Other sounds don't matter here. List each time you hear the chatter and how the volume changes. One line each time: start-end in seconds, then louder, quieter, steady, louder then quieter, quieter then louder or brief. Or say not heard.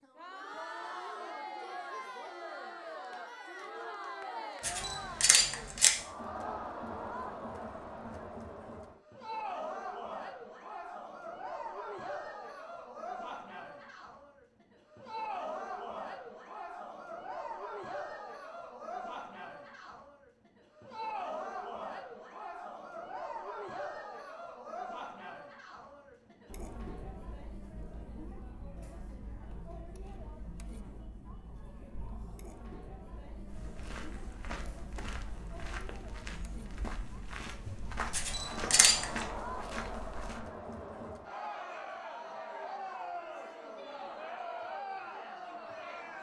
0.0-46.1 quieter then louder.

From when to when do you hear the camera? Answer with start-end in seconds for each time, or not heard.
4.6-6.0, 38.1-39.0.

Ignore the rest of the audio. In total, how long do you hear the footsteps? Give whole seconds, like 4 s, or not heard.
7 s.